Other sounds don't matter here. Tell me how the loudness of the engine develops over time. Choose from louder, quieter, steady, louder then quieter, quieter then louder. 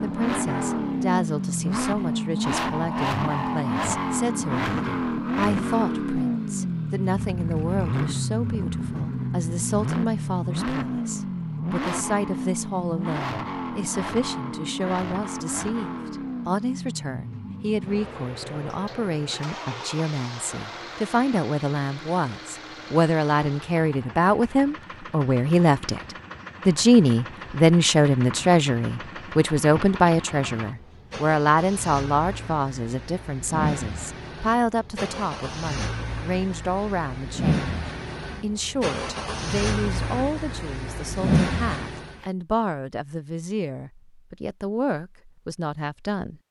quieter then louder.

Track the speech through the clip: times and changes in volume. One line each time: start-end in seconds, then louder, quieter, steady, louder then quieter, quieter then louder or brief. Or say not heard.
0.0-26.0 louder
26.6-46.4 quieter.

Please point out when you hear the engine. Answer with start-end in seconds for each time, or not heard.
0.0-42.2.